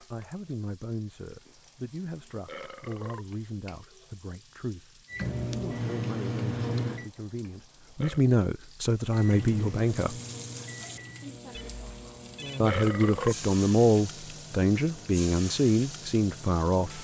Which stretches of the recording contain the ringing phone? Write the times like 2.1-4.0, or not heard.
11.5-12.6.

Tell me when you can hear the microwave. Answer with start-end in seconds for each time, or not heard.
5.1-7.1, 9.1-16.9.